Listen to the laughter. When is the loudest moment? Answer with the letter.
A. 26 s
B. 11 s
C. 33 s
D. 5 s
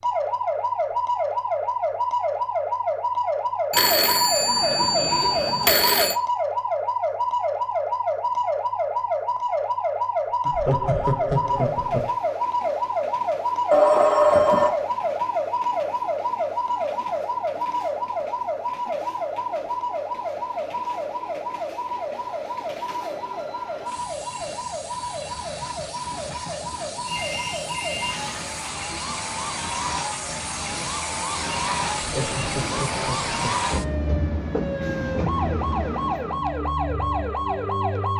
B.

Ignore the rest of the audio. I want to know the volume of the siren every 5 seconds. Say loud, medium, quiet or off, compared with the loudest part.
loud, loud, loud, loud, medium, medium, medium, loud.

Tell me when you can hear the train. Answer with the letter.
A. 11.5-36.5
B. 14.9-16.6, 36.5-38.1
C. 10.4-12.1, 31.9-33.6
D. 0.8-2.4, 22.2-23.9
A.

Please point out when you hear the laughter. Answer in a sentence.
You can hear the laughter from 10.4 to 12.1 s and from 31.9 to 33.6 s.